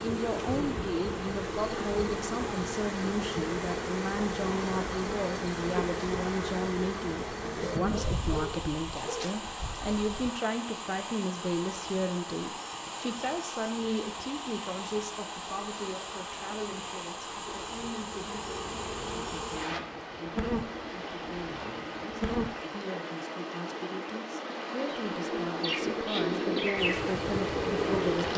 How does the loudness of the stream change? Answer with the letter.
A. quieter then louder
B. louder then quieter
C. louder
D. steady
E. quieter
D.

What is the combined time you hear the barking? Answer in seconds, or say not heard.
2 s.